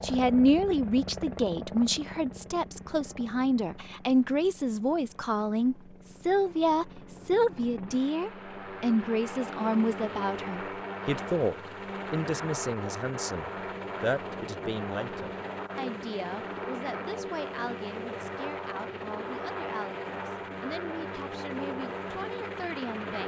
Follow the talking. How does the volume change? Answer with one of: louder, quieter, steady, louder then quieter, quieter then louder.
quieter.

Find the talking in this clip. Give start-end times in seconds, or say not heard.
0.0-23.2.